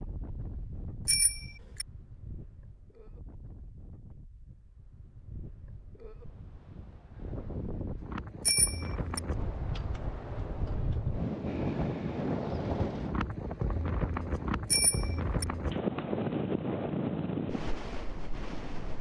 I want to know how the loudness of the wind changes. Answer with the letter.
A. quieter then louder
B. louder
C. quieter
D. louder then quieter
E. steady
B.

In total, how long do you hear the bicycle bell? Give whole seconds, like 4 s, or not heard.
2 s.